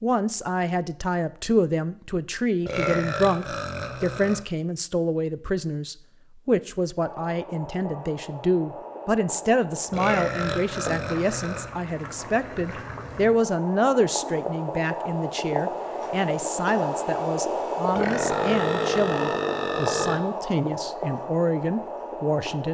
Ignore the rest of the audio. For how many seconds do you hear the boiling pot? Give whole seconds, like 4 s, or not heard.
16 s.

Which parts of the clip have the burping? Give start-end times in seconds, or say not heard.
2.6-4.5, 9.9-11.7, 17.9-20.2.